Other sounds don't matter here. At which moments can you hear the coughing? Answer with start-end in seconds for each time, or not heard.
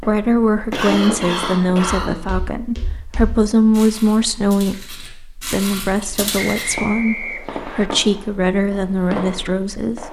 0.7-2.1.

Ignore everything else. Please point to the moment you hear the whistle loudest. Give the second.
7 s.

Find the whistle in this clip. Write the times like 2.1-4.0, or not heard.
6.3-7.9.